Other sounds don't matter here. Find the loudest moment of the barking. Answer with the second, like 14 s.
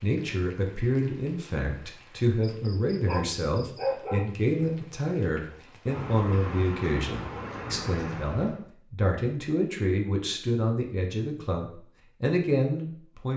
4 s.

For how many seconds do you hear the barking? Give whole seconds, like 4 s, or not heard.
2 s.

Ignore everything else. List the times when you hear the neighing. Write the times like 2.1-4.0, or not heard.
not heard.